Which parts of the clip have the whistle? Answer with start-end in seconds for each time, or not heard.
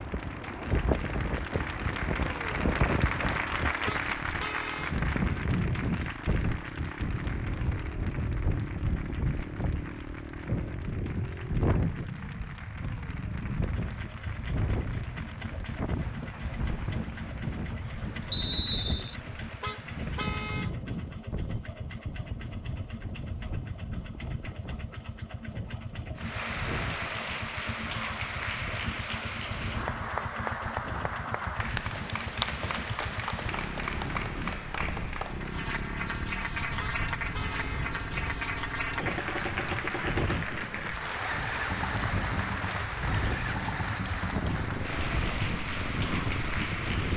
18.3-19.1.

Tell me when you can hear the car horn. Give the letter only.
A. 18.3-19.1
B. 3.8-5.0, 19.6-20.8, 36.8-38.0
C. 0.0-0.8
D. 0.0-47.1
B.